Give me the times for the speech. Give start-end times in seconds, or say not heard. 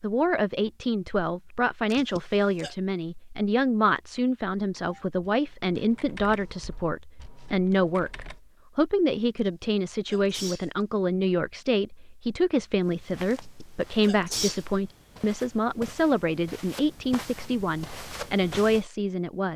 0.0-19.5.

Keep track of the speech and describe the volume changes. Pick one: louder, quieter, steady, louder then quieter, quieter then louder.
steady.